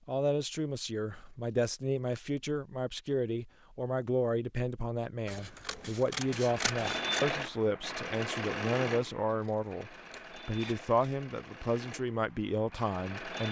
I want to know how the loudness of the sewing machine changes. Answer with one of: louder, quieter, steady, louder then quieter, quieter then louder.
quieter.